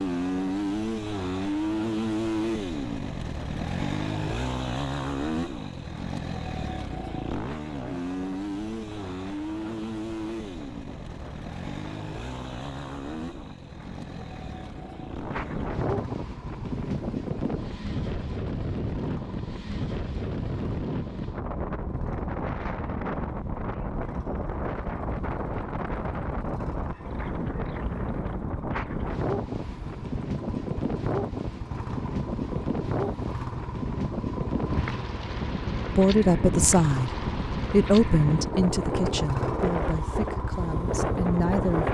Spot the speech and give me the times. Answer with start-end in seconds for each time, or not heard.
36.0-41.8.